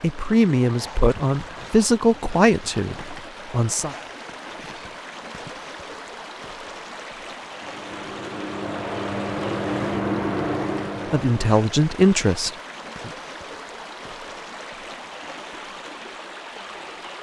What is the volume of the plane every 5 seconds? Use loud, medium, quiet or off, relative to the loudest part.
off, loud, loud, off.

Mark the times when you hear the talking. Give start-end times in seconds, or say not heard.
0.0-4.0, 11.1-13.1.